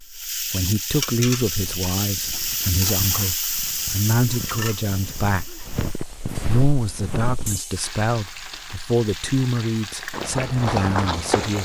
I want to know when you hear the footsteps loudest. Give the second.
11 s.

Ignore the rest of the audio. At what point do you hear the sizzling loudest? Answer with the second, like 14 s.
3 s.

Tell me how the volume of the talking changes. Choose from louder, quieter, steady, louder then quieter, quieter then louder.
steady.